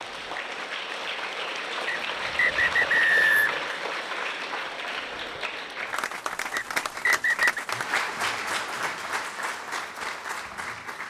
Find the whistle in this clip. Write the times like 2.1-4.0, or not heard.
1.9-3.7, 6.5-7.6.